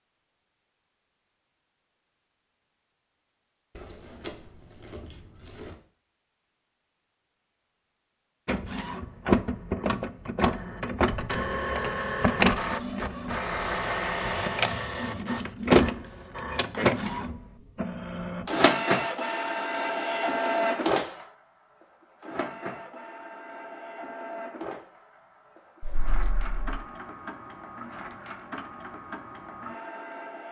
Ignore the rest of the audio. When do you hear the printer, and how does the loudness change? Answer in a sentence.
You can hear the printer from 8.4 to 30.4 s, getting quieter.